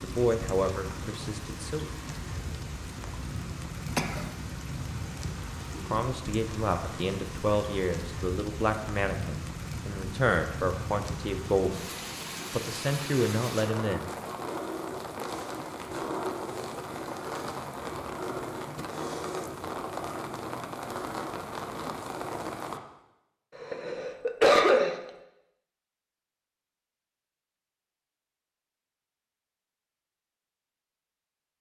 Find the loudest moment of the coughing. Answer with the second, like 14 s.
25 s.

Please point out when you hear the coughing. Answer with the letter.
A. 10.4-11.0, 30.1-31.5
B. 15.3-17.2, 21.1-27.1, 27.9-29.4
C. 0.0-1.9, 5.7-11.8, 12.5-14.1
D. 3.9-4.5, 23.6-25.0
D.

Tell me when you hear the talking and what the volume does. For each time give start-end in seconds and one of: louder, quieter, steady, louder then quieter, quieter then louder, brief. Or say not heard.
0.0-1.9 brief
5.7-11.8 steady
12.5-14.1 brief.